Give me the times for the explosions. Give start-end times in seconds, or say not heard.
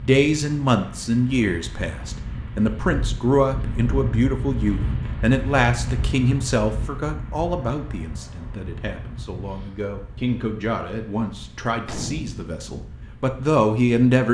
11.8-12.6.